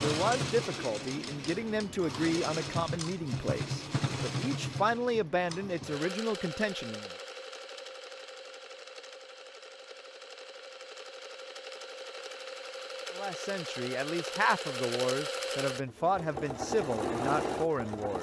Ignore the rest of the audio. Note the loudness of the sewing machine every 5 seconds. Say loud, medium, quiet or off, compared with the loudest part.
loud, medium, medium, loud.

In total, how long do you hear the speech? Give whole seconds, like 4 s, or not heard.
12 s.